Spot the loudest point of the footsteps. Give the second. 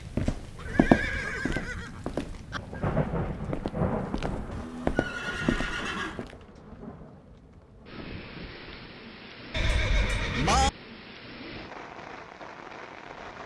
1 s.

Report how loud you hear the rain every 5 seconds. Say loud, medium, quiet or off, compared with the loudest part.
loud, medium, medium.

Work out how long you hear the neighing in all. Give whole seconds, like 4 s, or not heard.
5 s.